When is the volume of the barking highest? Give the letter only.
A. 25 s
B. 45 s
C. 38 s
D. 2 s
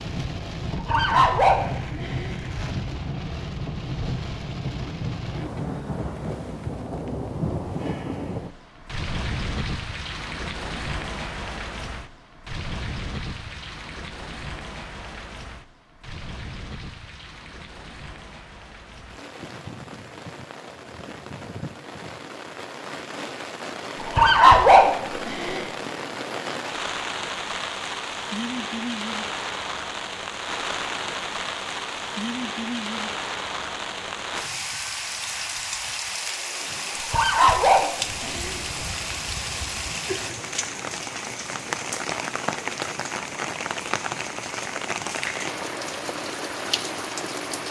A.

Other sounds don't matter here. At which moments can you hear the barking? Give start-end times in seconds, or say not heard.
0.7-2.4, 24.0-25.6, 37.0-38.6.